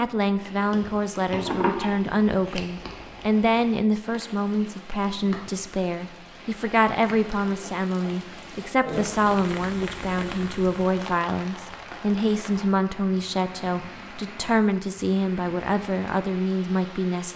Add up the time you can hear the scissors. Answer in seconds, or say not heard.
2 s.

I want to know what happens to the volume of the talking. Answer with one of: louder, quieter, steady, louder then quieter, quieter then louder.
steady.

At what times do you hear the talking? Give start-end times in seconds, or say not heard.
0.0-17.3.